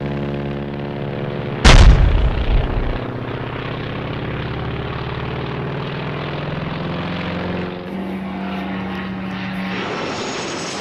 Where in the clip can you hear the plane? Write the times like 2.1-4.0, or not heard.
0.0-10.7.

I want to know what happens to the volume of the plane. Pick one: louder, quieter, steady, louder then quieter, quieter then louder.
steady.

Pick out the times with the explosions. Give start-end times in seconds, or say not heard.
1.6-3.0.